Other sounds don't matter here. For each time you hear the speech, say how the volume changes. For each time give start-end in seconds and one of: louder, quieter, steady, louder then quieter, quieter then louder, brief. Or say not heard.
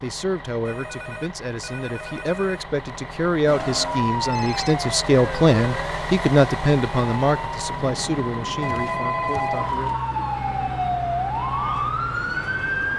0.0-9.9 louder then quieter.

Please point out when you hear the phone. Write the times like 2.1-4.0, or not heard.
0.7-2.6, 4.3-4.8, 8.6-9.8.